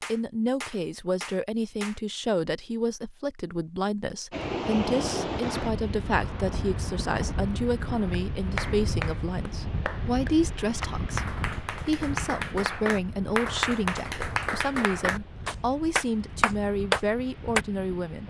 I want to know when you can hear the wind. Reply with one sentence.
You can hear the wind from 4.3 to 18.2 s.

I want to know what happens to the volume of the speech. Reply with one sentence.
The loudness of the speech stays about the same.